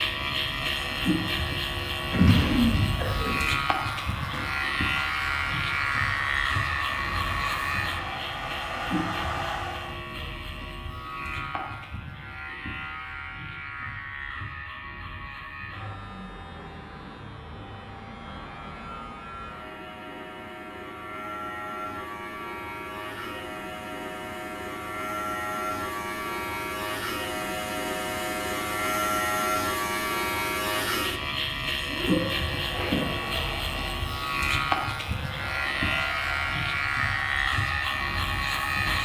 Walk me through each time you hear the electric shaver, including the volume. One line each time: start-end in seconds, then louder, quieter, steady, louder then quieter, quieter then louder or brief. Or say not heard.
0.0-39.0 quieter then louder.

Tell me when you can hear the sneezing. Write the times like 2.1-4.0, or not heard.
2.1-3.4, 31.9-33.0.